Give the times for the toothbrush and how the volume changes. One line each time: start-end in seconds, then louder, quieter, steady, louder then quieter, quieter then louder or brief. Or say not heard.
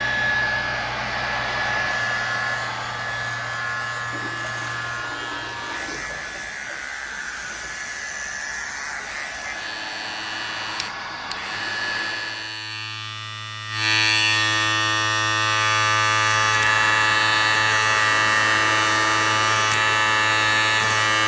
not heard.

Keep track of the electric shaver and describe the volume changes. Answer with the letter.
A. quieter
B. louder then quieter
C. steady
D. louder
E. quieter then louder
D.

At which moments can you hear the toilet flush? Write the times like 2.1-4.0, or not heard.
4.1-6.1.